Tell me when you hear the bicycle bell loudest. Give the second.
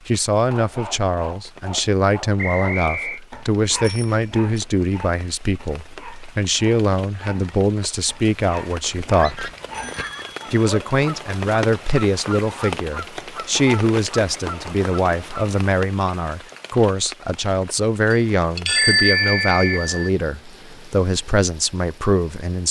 19 s.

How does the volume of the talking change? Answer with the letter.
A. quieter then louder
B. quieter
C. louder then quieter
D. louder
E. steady
E.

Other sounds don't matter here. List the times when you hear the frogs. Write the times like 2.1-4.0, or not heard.
not heard.